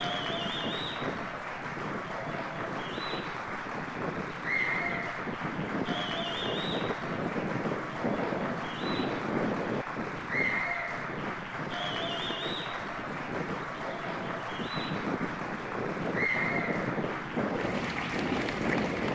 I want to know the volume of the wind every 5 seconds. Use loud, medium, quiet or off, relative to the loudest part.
medium, loud, medium, loud.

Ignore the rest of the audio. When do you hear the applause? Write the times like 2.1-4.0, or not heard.
0.0-19.1.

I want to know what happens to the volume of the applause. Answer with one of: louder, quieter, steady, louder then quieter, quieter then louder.
steady.